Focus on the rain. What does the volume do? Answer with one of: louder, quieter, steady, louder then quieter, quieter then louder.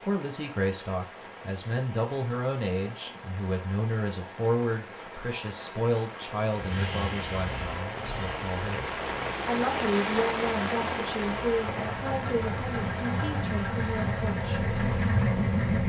louder then quieter.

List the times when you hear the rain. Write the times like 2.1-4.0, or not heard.
0.0-15.8.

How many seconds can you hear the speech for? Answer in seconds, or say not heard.
14 s.